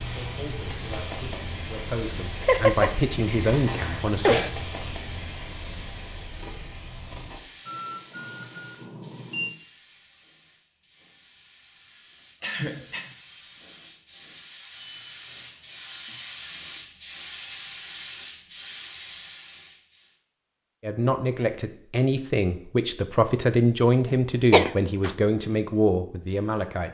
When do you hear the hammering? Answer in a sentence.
You can't hear the hammering here.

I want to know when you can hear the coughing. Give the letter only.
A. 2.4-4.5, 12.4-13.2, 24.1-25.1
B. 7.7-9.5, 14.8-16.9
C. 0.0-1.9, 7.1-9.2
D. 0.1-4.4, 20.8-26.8
A.